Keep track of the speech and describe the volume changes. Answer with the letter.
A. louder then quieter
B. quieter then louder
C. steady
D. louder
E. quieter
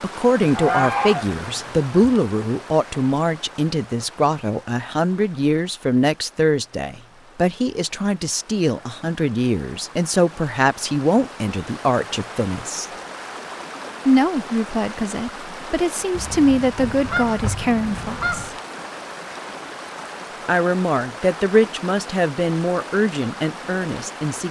C.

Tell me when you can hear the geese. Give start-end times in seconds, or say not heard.
0.4-2.1, 16.1-18.6.